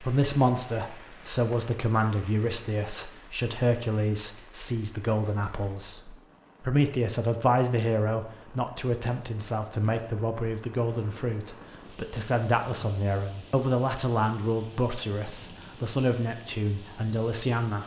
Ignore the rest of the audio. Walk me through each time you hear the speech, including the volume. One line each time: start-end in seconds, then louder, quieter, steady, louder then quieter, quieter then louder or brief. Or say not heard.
0.0-17.8 steady.